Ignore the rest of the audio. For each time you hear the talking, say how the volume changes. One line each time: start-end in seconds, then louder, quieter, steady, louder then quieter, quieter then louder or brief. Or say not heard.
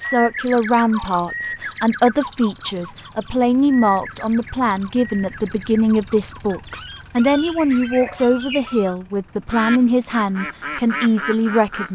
0.0-11.8 steady.